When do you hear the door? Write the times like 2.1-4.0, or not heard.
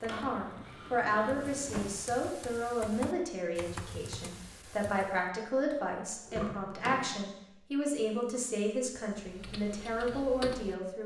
0.8-1.9, 6.2-7.2.